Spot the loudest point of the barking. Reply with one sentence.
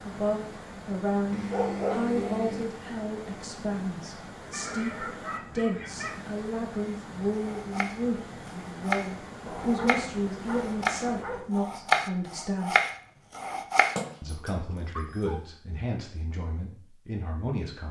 The loudest moment of the barking is at 2 seconds.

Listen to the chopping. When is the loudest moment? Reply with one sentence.
The volume of the chopping peaks at 12 seconds.